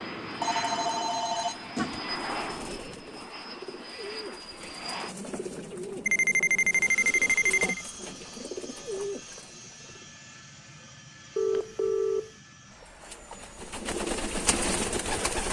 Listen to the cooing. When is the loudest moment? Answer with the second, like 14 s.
15 s.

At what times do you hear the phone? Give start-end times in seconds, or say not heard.
0.4-2.0, 6.0-7.8, 11.3-12.3.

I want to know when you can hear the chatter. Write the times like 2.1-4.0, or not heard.
not heard.